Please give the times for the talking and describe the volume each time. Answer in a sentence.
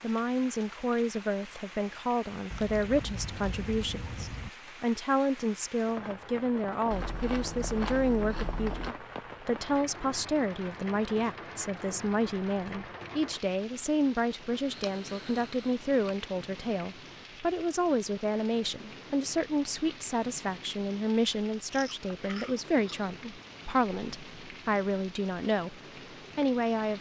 The talking can be heard from 0.0 to 26.9 s, at a steady volume.